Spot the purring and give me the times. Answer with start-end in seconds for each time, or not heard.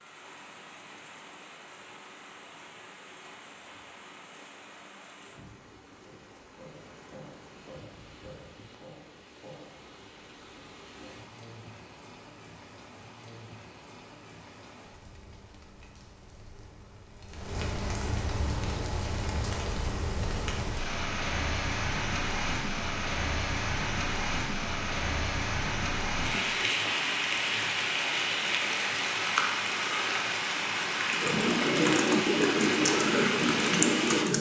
not heard.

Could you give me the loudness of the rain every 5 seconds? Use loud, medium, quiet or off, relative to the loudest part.
quiet, quiet, quiet, medium, loud, loud, loud.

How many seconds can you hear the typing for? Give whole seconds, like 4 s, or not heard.
3 s.